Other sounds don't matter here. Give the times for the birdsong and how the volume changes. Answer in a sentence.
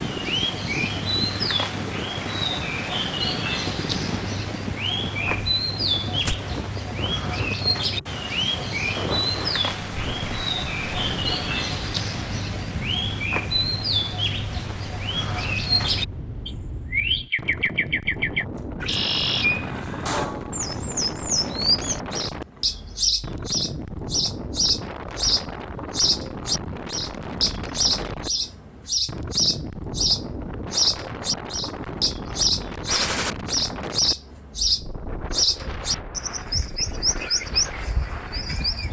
The birdsong can be heard from 0.0 to 38.8 s, at a steady volume.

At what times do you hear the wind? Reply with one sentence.
You can hear the wind from 0.0 to 38.8 s.